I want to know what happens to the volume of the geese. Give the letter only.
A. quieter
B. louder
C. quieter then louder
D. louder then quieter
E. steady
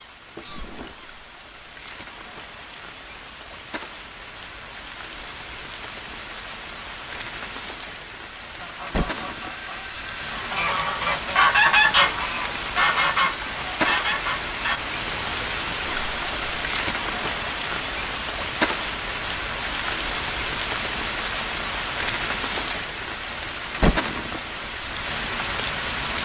D.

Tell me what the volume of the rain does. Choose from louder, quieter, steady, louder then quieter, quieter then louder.
louder.